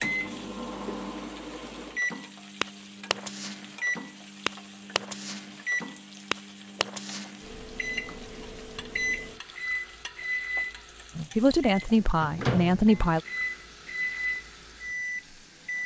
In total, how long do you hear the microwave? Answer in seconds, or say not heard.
16 s.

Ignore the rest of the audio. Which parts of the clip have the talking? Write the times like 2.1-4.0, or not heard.
11.2-13.2.